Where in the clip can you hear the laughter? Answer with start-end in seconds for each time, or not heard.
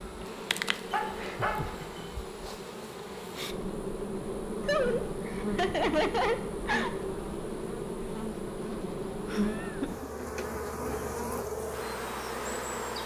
1.1-1.9, 4.6-6.9, 9.2-10.1.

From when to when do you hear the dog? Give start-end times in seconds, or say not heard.
0.9-2.1.